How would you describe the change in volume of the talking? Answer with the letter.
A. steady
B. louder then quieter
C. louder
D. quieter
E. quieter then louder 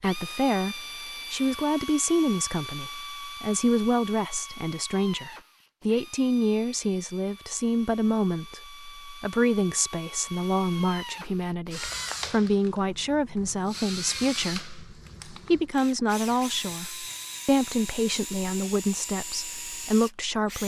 A.